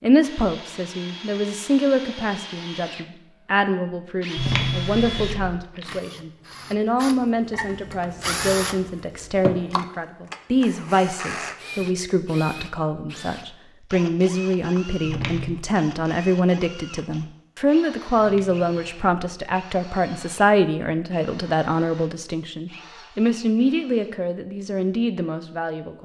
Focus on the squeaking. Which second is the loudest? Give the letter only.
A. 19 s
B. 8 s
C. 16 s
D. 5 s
D.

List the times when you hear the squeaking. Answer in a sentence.
You can hear the squeaking from 4.3 to 5.5 s, from 15.1 to 15.7 s and from 18.1 to 19.1 s.